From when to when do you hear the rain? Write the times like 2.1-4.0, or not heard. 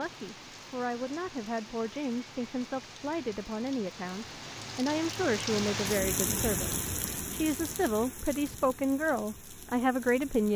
0.0-10.5.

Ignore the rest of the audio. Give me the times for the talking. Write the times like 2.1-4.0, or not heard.
0.0-10.5.